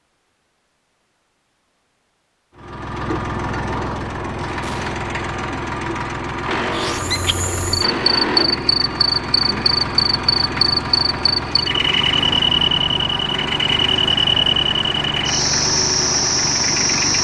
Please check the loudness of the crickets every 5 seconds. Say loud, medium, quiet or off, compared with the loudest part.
off, loud, loud, loud.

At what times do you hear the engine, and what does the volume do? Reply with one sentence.
The engine can be heard from 2.5 to 17.1 s, at a steady volume.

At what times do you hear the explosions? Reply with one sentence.
You can hear the explosions from 4.6 to 5.0 s.